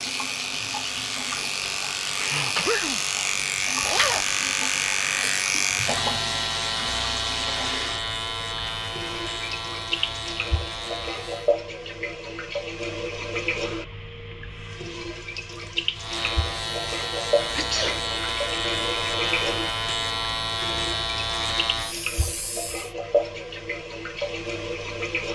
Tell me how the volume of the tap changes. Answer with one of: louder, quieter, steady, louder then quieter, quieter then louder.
steady.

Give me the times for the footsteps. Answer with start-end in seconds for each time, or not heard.
not heard.